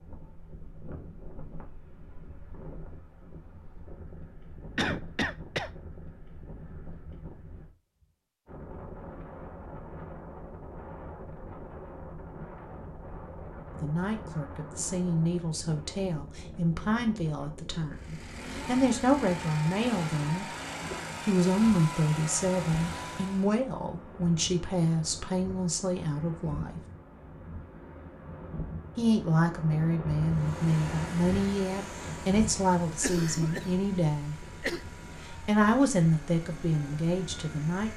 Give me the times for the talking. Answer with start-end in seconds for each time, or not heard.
13.7-20.4, 21.2-26.8, 28.9-34.4, 35.2-37.9.